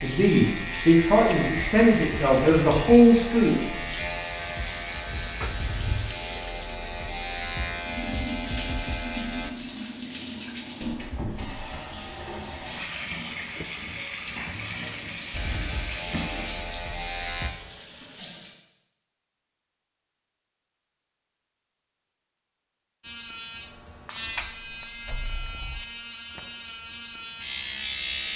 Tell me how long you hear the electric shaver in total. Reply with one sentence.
You can hear the electric shaver for 17 seconds altogether.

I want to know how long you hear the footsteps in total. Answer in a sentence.
You can't hear the footsteps here.